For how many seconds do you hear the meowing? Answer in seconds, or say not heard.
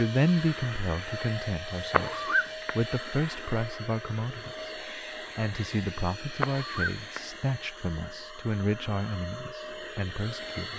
2 s.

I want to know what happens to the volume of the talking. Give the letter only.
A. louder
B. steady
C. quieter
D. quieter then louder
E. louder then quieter
C.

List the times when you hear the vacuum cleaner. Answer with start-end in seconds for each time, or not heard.
0.0-10.7.